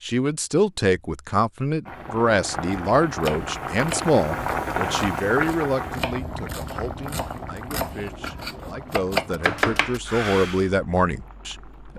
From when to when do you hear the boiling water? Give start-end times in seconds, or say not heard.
1.9-11.9.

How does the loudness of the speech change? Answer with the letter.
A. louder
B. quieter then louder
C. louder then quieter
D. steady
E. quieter
B.